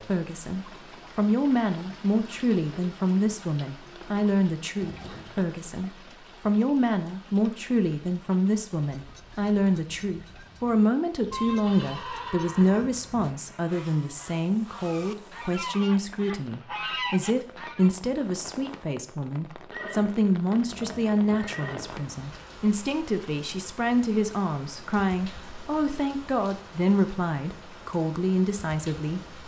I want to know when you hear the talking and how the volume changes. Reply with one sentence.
The talking can be heard from 0.1 to 29.4 s, at a steady volume.